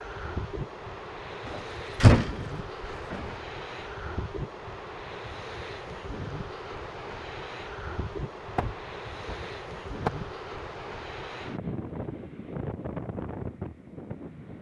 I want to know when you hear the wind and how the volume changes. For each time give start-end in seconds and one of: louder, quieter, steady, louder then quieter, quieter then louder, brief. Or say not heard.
0.0-14.5 steady.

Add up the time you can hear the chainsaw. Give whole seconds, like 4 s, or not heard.
not heard.